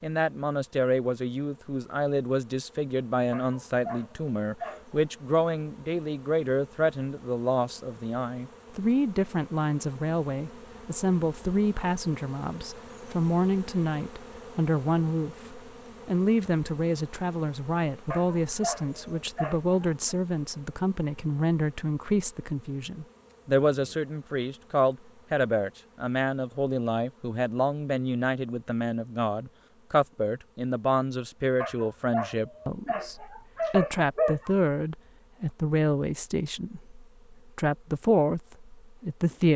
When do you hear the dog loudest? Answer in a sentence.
The loudest moment of the dog is at 34 seconds.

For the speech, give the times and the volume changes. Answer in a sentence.
The speech can be heard from 0.0 to 39.5 s, at a steady volume.